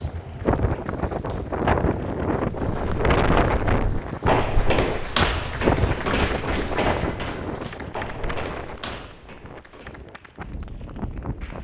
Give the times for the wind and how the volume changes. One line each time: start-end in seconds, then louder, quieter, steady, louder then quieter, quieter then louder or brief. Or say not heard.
0.0-11.6 quieter.